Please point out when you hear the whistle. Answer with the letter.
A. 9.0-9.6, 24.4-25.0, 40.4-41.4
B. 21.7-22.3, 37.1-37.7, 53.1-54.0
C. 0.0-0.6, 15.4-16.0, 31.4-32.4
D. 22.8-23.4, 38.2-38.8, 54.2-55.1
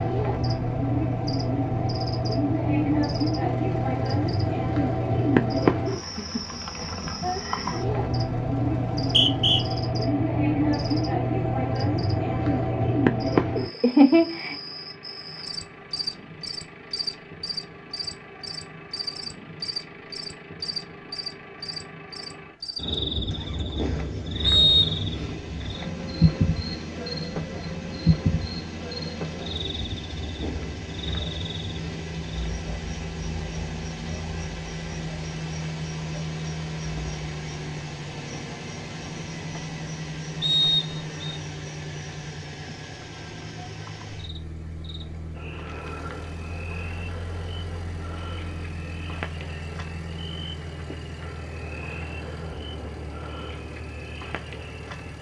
A.